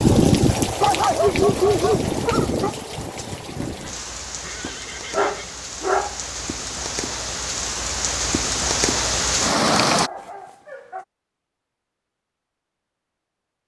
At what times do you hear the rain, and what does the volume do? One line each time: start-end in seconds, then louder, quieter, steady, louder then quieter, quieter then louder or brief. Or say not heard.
0.0-10.1 quieter then louder.